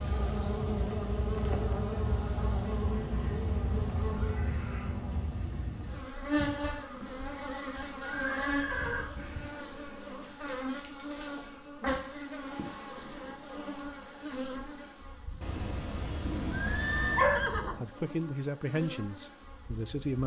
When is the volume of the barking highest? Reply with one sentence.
The loudest moment of the barking is at 17 seconds.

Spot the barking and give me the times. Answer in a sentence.
You can hear the barking from 15.4 to 17.6 s.